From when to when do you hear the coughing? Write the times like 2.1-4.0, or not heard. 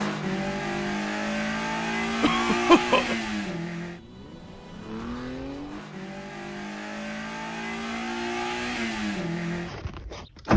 2.2-3.1.